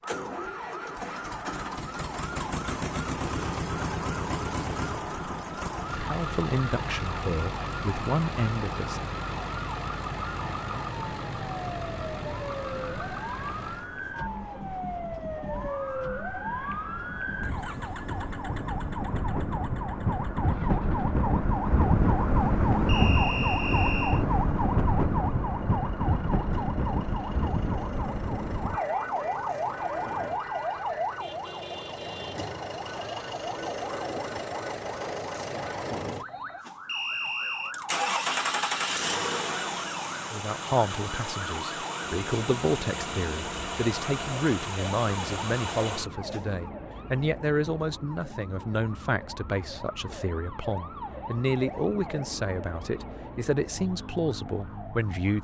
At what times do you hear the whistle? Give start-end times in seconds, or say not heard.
22.9-24.2, 36.9-37.8.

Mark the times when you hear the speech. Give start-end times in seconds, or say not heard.
6.0-9.1, 40.3-55.3.